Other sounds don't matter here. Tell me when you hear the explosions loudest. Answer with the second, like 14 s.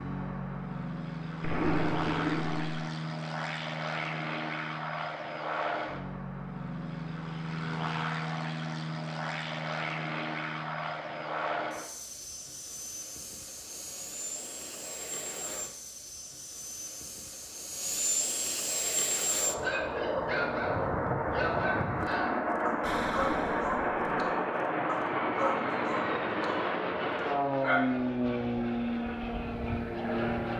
2 s.